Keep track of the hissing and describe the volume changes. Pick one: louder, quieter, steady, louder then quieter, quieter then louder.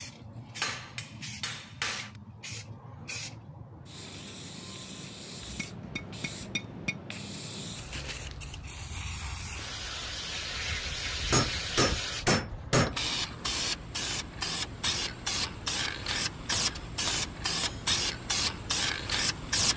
louder.